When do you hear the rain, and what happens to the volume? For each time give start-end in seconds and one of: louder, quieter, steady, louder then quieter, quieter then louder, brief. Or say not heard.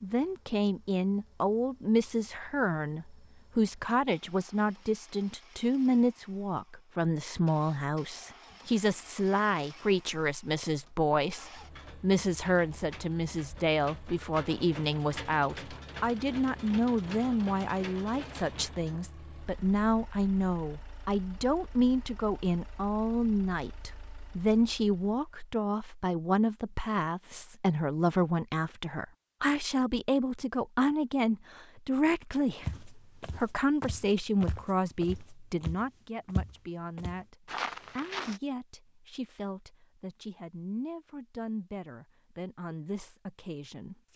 not heard.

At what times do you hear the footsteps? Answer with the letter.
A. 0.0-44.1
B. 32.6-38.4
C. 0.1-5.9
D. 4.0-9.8
B.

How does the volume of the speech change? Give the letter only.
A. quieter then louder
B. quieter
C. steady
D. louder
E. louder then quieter
B.